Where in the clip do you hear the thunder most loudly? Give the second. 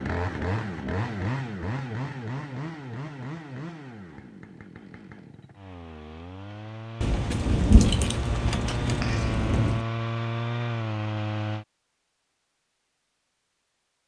8 s.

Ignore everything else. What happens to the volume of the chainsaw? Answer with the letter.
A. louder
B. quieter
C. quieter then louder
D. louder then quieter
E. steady
C.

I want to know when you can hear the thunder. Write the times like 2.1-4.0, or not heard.
7.0-9.8.